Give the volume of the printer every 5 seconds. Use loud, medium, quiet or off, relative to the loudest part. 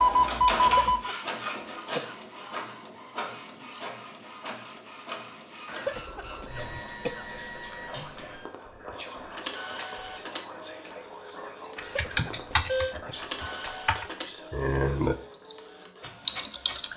loud, medium, medium, medium.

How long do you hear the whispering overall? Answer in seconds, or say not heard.
9 s.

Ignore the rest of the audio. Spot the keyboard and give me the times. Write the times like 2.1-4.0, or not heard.
11.8-15.6, 16.2-16.9.